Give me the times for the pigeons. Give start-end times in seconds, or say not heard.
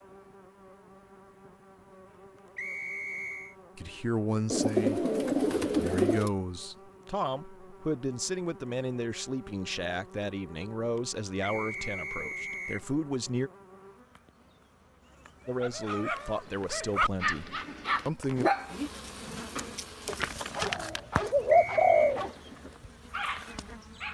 4.5-6.3, 20.6-22.2.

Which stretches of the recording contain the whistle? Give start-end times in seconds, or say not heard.
2.5-3.5, 11.4-12.8, 21.4-22.1.